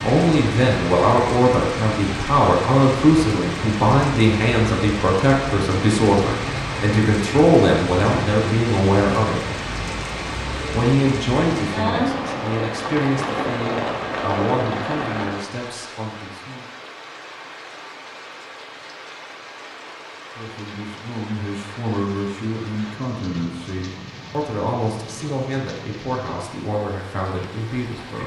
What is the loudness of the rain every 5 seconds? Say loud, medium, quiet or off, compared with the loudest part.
loud, loud, loud, medium, quiet, quiet.